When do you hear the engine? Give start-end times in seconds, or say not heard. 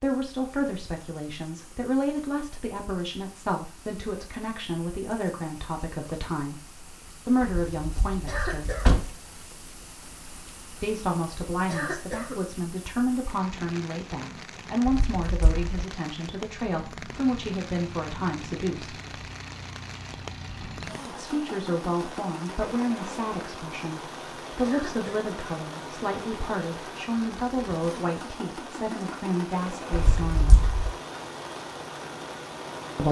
17.1-33.0.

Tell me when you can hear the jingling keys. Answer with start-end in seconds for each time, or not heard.
7.4-9.1, 14.8-15.8, 29.9-30.9.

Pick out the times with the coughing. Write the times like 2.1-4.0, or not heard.
8.2-8.9, 11.7-12.4, 24.6-25.3.